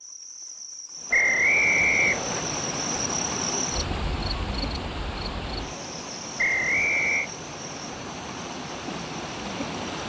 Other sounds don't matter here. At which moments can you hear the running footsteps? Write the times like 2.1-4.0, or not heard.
not heard.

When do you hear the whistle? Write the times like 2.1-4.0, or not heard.
1.1-2.5, 6.3-7.3.